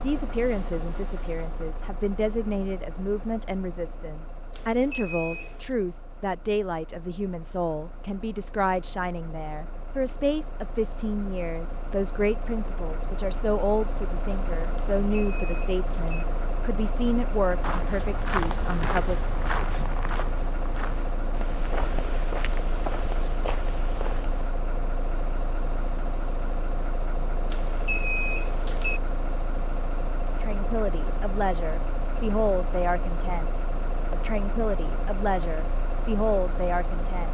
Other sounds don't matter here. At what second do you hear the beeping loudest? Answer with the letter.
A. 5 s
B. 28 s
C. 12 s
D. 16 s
B.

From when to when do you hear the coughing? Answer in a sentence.
You can't hear the coughing here.